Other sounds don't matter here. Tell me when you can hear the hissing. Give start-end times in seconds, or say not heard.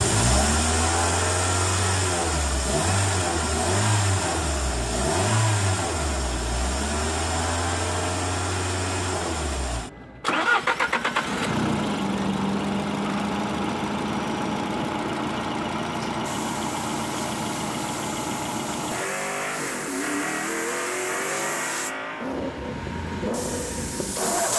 16.1-24.5.